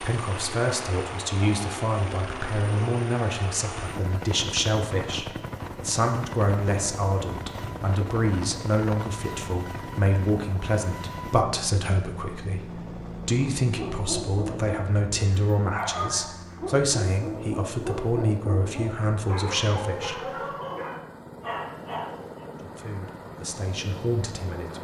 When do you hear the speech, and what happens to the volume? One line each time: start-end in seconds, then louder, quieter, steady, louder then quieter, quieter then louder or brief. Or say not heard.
0.0-20.5 steady
22.6-24.7 brief.